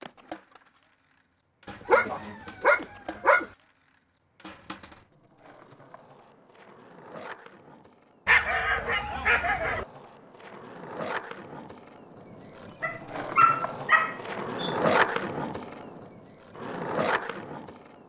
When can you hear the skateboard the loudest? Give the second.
15 s.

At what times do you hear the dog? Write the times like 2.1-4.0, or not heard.
1.6-3.5, 8.2-9.8, 12.8-14.8.